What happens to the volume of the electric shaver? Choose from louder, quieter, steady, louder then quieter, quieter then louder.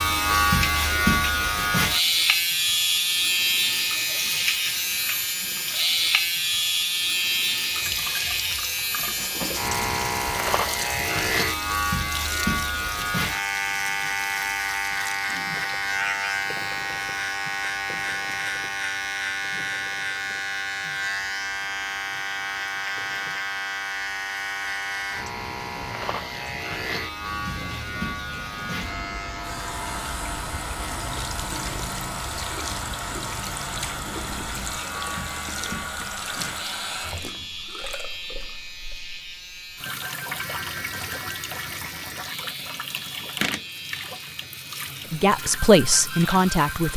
quieter.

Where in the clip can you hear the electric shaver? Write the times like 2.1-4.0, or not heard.
0.0-46.9.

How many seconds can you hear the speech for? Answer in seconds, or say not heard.
2 s.